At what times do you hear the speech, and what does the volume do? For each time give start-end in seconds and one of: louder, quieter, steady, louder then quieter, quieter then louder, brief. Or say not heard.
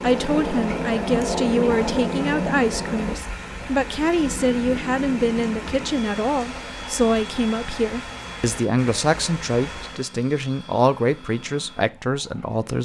0.0-12.8 steady.